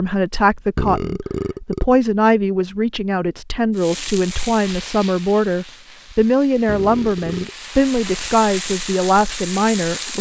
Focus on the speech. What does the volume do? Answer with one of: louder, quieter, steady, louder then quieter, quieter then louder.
steady.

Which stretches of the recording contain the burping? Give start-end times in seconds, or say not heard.
0.8-2.0, 6.7-7.5.